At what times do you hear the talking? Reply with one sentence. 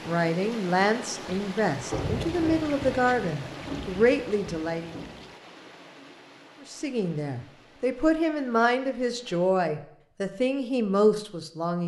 You can hear the talking from 0.1 to 5.0 s and from 6.7 to 11.8 s.